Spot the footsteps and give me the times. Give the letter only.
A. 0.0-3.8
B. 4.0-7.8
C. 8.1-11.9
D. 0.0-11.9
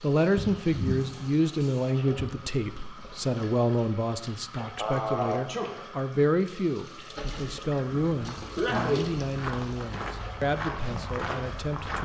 C.